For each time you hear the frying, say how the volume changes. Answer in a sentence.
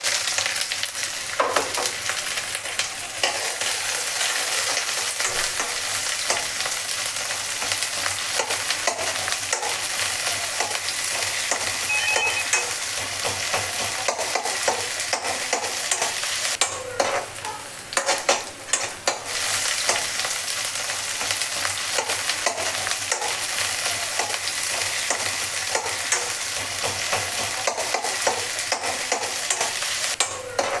The frying can be heard from 0.0 to 30.7 s, at a steady volume.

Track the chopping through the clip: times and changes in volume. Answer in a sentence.
The chopping can't be heard in this clip.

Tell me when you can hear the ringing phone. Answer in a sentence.
The ringing phone can be heard from 11.8 to 12.7 s.